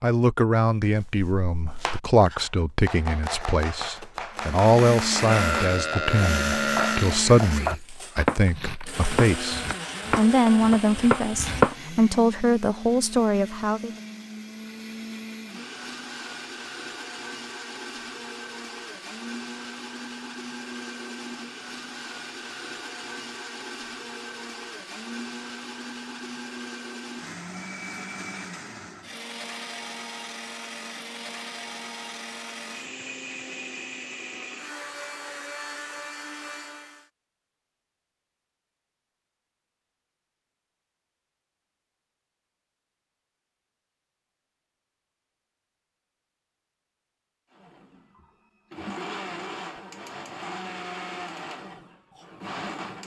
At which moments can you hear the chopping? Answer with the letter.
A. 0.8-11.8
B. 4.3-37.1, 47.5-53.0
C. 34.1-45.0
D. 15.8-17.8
A.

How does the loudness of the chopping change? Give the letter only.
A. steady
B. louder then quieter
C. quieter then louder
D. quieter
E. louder
E.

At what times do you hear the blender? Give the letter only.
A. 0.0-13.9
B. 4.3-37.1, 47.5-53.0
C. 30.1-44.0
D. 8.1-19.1
B.